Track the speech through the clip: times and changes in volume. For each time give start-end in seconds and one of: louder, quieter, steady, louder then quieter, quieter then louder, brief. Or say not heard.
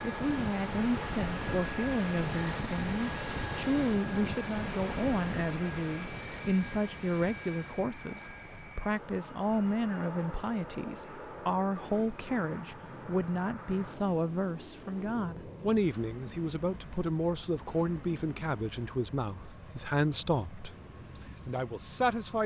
0.0-20.8 steady
21.4-22.4 brief.